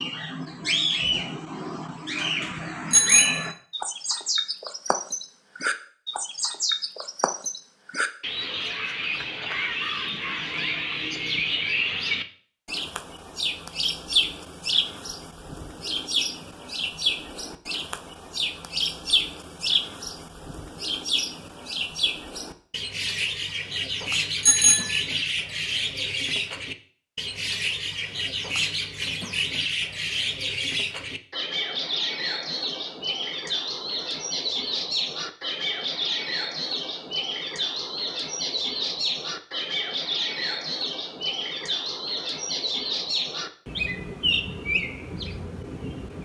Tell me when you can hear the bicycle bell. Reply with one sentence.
The bicycle bell can be heard from 2.9 to 3.5 s and from 24.4 to 25.0 s.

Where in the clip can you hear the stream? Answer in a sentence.
The stream can't be heard in this clip.